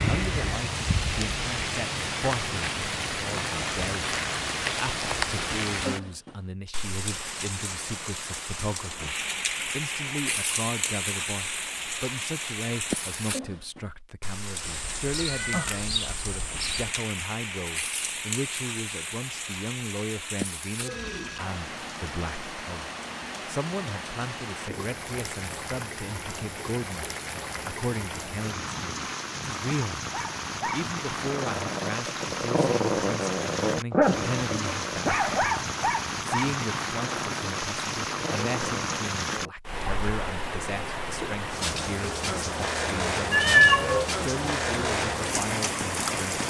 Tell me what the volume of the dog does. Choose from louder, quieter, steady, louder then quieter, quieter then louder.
louder then quieter.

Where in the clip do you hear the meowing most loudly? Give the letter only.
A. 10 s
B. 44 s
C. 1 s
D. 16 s
B.